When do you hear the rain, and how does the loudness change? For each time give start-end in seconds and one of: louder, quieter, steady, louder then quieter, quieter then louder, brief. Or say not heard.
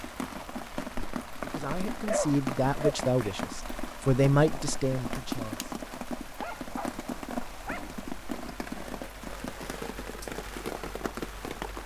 0.0-11.8 steady.